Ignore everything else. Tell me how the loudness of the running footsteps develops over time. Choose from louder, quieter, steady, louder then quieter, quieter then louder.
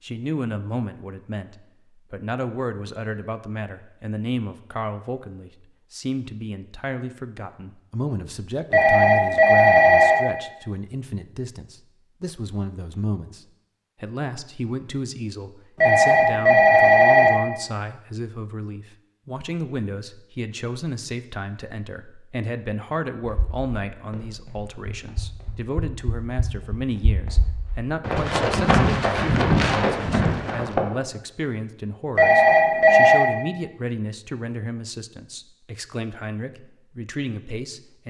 louder.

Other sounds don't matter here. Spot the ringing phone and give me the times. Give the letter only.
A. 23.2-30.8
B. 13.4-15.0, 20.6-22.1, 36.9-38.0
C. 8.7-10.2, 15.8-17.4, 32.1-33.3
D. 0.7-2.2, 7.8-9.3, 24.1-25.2
C.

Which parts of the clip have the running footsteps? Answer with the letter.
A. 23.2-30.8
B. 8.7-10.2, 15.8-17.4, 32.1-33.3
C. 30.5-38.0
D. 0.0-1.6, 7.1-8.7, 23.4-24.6
A.